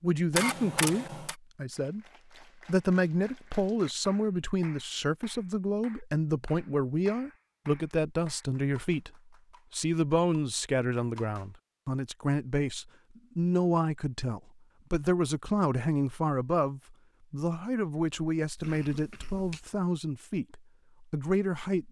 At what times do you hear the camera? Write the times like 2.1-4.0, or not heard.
0.3-1.4, 18.6-19.6.